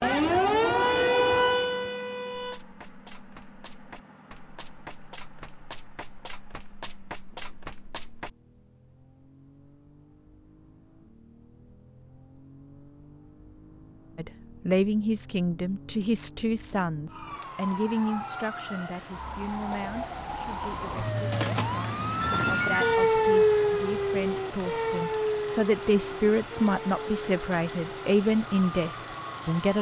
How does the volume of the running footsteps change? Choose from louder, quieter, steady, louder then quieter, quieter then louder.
louder.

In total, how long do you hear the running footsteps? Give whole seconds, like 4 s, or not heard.
6 s.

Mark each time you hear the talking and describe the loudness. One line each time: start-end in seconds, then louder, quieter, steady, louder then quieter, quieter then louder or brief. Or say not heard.
14.2-29.7 quieter then louder.